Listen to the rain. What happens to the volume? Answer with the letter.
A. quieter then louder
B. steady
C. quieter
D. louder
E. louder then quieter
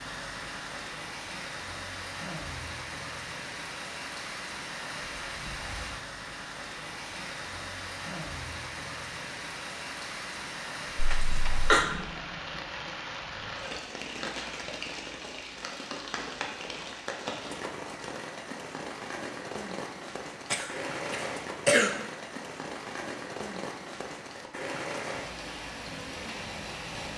B.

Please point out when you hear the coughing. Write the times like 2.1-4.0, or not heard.
10.9-11.9, 20.5-21.9.